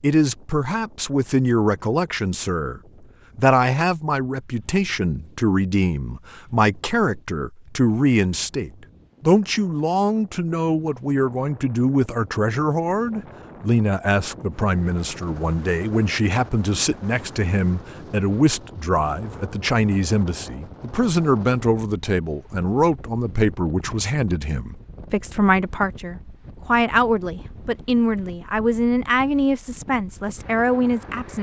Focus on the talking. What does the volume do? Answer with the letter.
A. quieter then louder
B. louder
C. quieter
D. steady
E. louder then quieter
D.